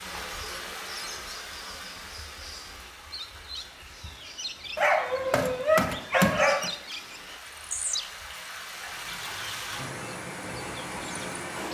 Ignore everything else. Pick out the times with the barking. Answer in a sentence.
The barking can be heard from 4.8 to 6.7 s.